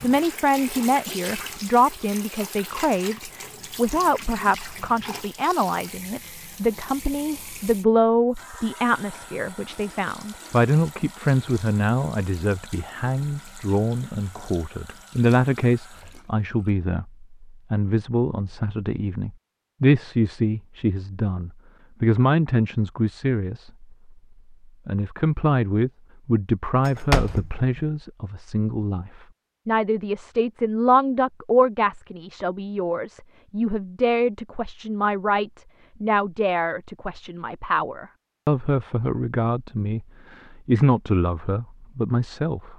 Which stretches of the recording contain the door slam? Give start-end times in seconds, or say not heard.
26.9-27.9.